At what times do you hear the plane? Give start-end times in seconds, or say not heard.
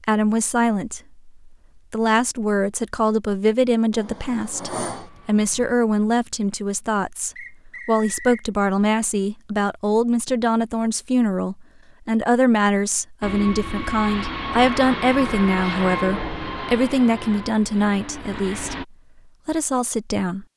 3.9-5.8, 13.2-18.9.